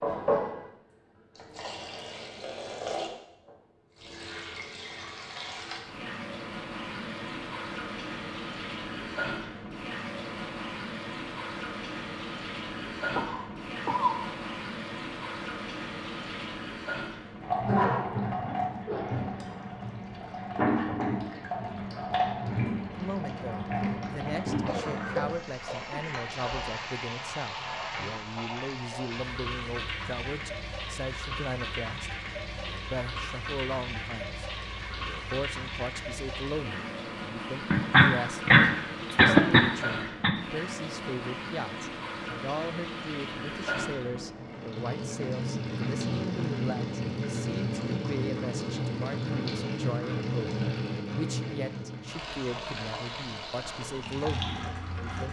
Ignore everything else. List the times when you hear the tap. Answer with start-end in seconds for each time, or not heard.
0.0-55.2.